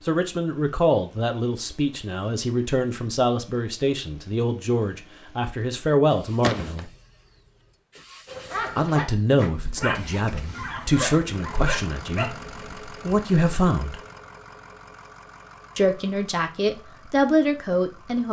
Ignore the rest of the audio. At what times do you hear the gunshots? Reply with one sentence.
The gunshots can be heard from 6.4 to 6.8 s.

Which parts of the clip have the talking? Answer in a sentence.
The talking can be heard from 0.1 to 6.9 s, from 8.8 to 14.0 s and from 15.8 to 18.2 s.